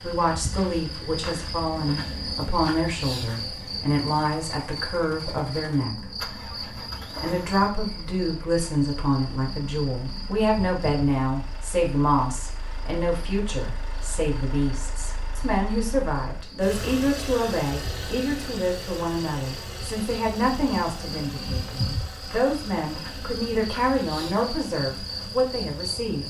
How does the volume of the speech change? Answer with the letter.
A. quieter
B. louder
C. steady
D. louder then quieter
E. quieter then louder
C.